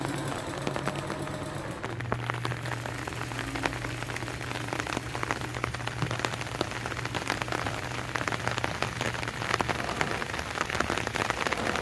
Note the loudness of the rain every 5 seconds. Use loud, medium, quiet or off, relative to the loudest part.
medium, loud, loud.